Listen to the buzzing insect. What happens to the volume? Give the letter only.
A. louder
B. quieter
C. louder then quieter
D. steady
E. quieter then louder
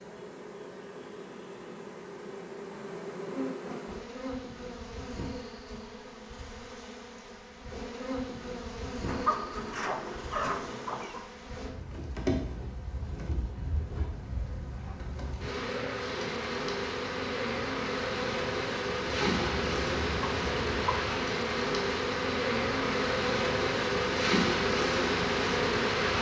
A.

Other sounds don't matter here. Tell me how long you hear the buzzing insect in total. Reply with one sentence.
You can hear the buzzing insect for 26 seconds altogether.